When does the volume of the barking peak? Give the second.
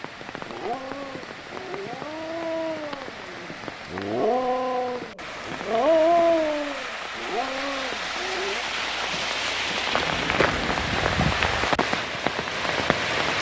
6 s.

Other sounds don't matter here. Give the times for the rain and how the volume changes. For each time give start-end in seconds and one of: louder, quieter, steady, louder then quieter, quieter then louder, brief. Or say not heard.
0.0-13.3 louder.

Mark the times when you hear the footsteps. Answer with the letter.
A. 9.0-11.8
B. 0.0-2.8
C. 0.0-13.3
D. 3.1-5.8
A.